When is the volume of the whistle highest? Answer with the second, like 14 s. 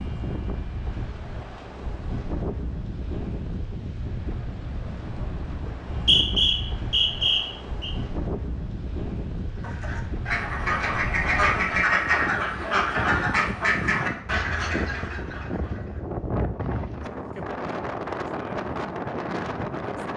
6 s.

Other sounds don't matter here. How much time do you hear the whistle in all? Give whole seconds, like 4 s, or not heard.
2 s.